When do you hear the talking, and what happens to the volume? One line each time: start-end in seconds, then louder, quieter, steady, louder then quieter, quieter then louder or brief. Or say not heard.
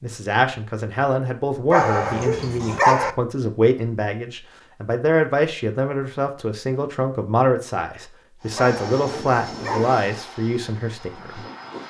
0.0-11.4 steady.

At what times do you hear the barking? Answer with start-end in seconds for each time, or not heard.
1.7-3.1, 8.6-10.0.